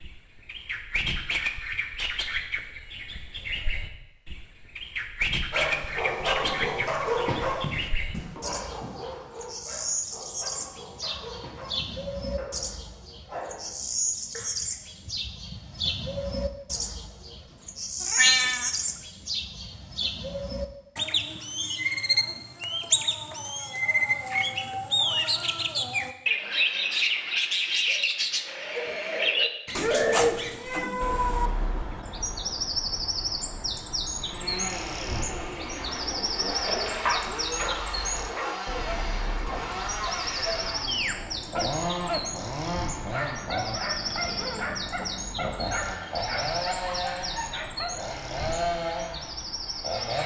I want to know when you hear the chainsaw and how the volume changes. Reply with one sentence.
The chainsaw can be heard from 34.2 to 50.2 s, at a steady volume.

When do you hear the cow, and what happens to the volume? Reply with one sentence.
The cow can't be heard in this clip.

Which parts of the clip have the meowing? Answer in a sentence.
You can hear the meowing from 18.1 to 18.8 s and from 29.8 to 31.5 s.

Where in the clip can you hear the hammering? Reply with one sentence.
You can't hear the hammering here.